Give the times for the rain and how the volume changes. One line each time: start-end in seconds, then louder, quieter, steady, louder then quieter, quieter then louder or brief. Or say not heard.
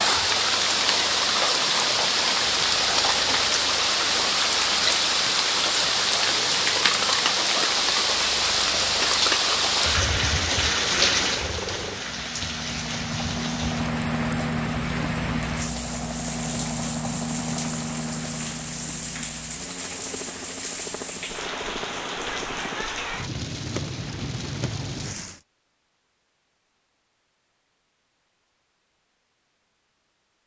0.0-25.4 quieter.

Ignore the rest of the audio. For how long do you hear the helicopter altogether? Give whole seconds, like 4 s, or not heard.
25 s.